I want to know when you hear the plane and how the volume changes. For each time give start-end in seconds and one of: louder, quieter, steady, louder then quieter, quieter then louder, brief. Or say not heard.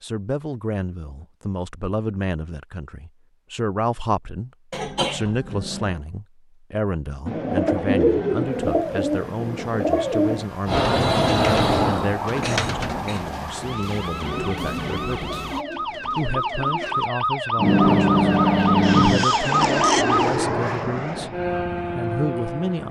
10.7-13.1 brief
17.6-22.8 quieter.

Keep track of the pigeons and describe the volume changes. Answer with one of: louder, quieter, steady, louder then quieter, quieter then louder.
quieter.